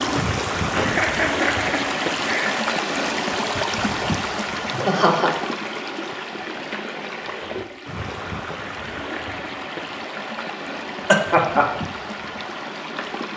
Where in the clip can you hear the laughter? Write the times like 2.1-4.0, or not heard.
0.7-2.6, 4.7-5.3, 11.1-11.7.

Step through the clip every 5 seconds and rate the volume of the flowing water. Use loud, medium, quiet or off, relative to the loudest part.
loud, medium, medium.